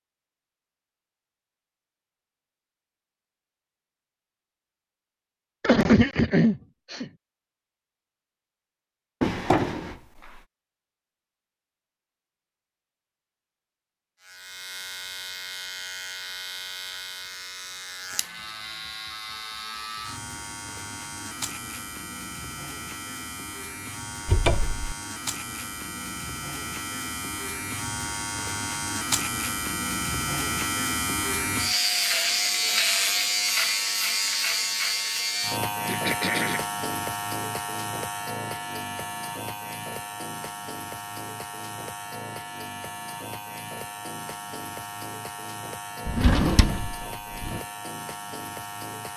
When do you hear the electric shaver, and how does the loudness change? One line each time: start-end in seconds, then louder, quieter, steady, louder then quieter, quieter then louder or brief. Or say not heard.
14.2-49.1 louder then quieter.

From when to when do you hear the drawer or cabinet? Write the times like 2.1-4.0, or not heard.
9.2-10.4, 24.2-24.9, 46.0-47.6.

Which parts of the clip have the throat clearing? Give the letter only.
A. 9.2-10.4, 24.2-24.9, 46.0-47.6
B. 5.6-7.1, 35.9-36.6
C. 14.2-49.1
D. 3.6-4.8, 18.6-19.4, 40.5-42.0
B.